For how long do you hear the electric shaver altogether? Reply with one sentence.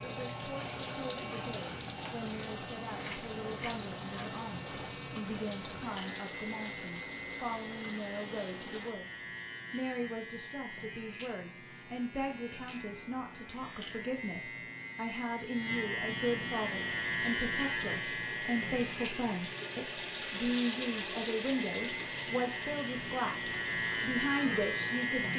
You can hear the electric shaver for 25 seconds altogether.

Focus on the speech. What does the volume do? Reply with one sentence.
The volume of the speech goes up.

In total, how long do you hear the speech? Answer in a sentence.
You can hear the speech for 25 seconds altogether.